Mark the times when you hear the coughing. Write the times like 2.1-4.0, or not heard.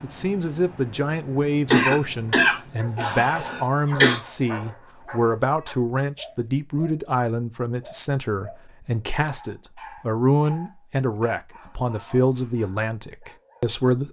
1.7-4.2.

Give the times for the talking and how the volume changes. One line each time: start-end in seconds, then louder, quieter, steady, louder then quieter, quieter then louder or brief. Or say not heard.
0.0-14.0 steady.